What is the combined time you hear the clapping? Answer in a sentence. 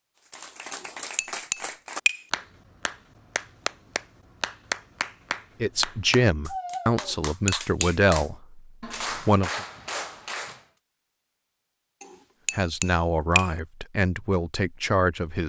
You can hear the clapping for 10 seconds altogether.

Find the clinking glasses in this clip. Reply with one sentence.
The clinking glasses can be heard from 0.7 to 2.2 s, from 7.0 to 8.0 s and from 12.0 to 13.5 s.